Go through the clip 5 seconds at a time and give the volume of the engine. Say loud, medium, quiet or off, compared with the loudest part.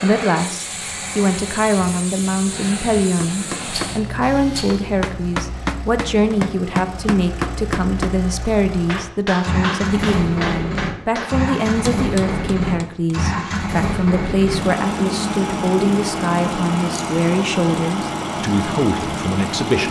medium, medium, loud, loud.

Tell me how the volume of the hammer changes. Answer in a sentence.
The loudness of the hammer goes up, then down.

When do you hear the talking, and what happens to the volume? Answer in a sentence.
The talking can be heard from 0.0 to 19.8 s, at a steady volume.